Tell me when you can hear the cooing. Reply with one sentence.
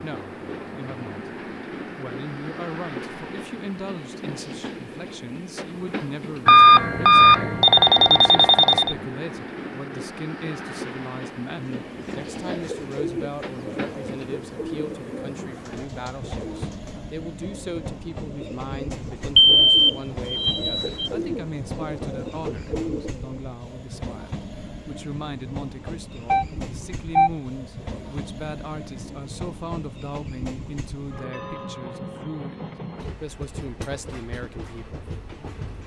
The cooing can be heard from 11.5 to 23.4 s.